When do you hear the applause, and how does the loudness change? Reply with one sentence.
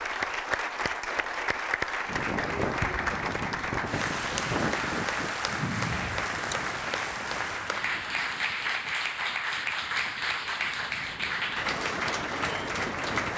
You can hear the applause from 0.0 to 13.3 s, at a steady volume.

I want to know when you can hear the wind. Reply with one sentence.
You can hear the wind from 2.0 to 13.3 s.